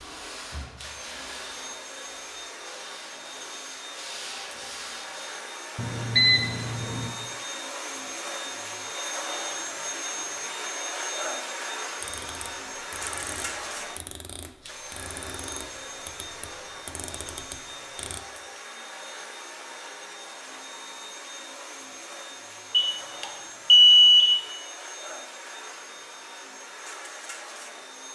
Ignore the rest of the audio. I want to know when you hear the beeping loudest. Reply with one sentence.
The loudest moment of the beeping is at 24 seconds.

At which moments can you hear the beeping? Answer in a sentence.
You can hear the beeping from 5.8 to 7.1 s and from 22.7 to 24.4 s.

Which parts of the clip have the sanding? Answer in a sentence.
The sanding can be heard from 0.0 to 5.4 s.